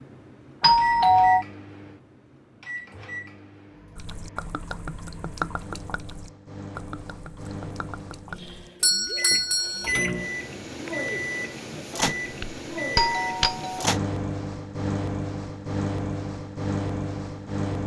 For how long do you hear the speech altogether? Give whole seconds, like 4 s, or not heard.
not heard.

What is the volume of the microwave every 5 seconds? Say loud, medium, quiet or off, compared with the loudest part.
medium, medium, loud, loud.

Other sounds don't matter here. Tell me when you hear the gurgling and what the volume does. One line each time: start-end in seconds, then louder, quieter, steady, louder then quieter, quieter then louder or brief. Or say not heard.
4.0-10.2 quieter
10.8-11.8 brief.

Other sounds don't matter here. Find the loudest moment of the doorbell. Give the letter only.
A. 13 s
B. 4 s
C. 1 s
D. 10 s
C.